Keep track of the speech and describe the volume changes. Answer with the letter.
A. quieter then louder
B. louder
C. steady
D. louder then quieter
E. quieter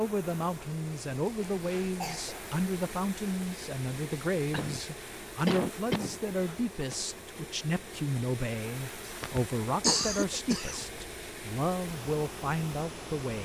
C.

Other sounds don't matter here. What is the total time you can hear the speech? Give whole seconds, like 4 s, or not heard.
13 s.